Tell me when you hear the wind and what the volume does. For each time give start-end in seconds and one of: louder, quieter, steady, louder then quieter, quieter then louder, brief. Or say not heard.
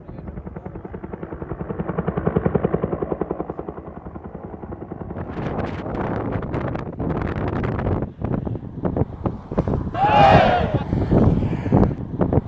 5.1-12.4 louder.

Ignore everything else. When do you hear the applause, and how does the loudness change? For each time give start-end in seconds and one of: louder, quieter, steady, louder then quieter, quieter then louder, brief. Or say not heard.
not heard.